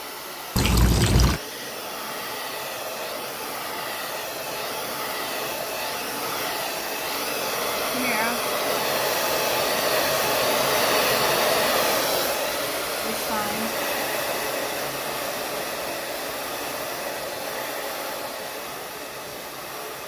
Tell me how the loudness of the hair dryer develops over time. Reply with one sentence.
The volume of the hair dryer goes up, then down.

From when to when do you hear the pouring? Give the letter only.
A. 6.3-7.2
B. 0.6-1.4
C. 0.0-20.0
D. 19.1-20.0
B.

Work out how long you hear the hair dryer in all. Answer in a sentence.
The hair dryer can be heard for 20 seconds in total.